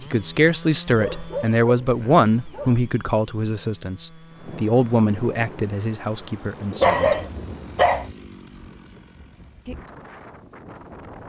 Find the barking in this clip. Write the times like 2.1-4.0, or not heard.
0.8-2.8, 6.8-8.1.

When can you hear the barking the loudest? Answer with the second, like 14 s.
7 s.